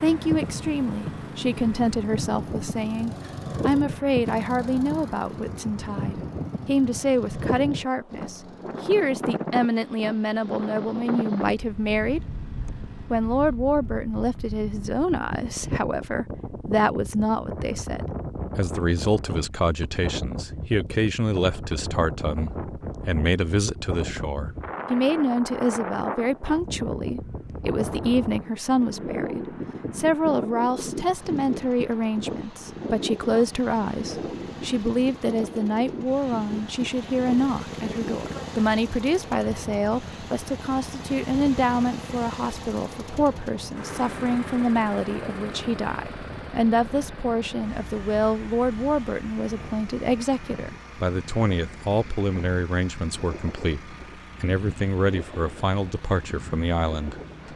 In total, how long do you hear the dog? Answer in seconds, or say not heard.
not heard.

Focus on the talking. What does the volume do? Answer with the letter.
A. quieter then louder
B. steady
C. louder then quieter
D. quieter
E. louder
B.